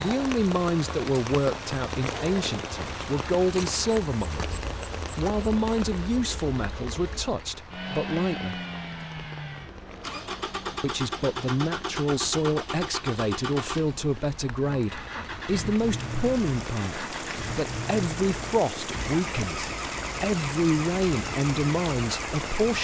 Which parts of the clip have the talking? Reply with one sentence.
The talking can be heard from 0.0 to 4.5 s, from 5.2 to 8.6 s and from 10.8 to 22.8 s.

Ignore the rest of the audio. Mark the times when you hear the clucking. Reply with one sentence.
The clucking can't be heard in this clip.